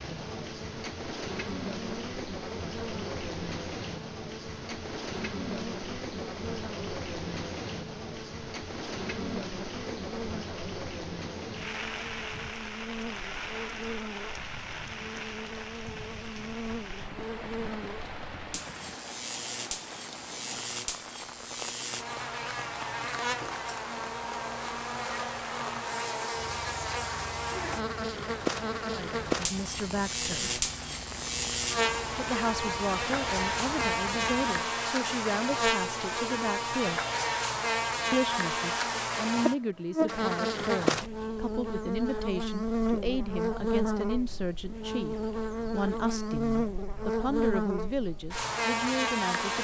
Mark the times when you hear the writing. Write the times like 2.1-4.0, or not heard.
not heard.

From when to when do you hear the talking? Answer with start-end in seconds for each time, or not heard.
28.9-30.6, 32.1-37.0, 38.1-49.5.